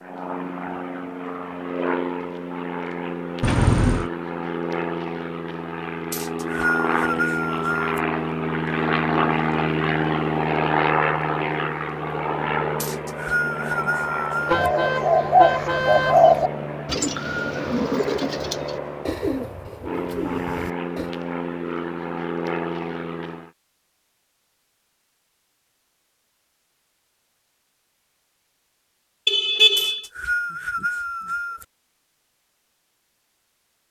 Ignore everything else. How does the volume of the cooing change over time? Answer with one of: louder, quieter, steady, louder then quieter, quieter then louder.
quieter.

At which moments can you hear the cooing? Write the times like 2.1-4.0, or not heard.
14.4-21.1.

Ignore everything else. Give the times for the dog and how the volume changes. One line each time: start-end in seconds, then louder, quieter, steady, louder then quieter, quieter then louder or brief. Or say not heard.
not heard.